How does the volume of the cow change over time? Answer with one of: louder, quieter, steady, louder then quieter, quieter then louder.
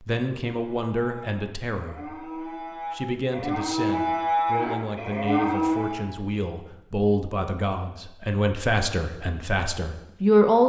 louder.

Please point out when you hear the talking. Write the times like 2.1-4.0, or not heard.
0.0-10.6.